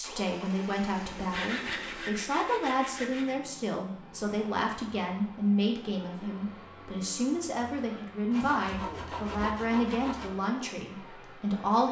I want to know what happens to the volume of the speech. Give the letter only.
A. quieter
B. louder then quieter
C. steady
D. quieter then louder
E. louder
C.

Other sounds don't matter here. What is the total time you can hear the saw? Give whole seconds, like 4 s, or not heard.
4 s.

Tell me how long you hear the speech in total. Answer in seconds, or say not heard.
12 s.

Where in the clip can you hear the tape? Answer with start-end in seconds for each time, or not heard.
not heard.